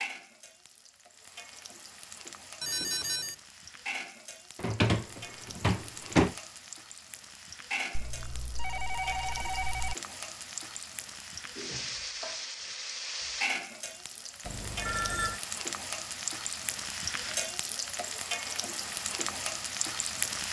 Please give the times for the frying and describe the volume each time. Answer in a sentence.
The frying can be heard from 0.0 to 20.4 s, getting louder.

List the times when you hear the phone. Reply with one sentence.
The phone can be heard from 2.6 to 3.4 s, from 8.0 to 9.9 s and from 14.4 to 15.4 s.